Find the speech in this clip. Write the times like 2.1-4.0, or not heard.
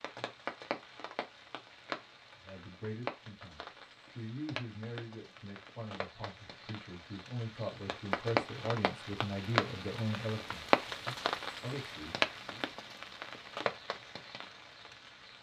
2.4-12.7.